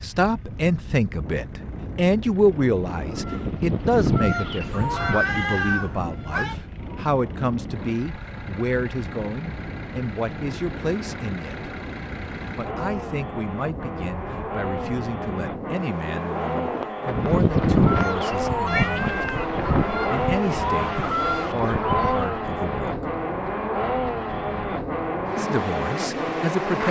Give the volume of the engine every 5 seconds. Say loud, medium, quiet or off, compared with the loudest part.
quiet, quiet, medium, loud, loud, loud.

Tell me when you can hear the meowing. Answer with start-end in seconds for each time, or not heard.
4.8-6.5, 18.7-19.4.